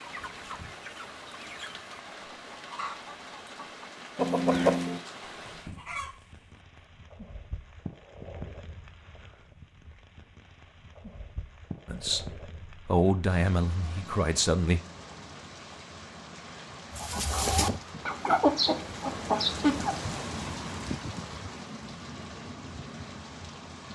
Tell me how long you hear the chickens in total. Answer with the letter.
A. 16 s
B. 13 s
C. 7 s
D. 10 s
D.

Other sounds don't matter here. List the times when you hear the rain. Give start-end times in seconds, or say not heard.
0.0-23.8.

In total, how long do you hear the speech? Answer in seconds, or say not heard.
3 s.